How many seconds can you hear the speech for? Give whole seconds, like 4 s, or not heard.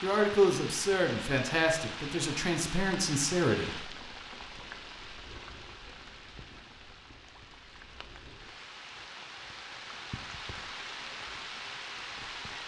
4 s.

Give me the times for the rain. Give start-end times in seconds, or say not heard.
0.0-12.6.